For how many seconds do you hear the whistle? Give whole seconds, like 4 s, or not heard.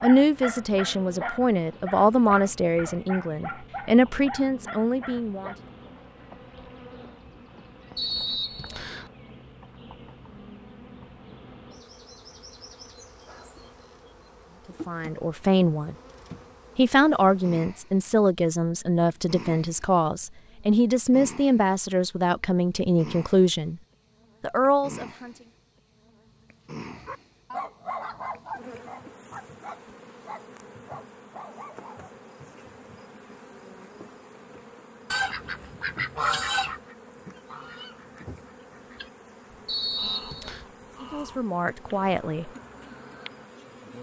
2 s.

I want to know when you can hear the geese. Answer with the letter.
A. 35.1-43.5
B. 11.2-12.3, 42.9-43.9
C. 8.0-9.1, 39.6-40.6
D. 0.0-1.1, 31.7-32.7
A.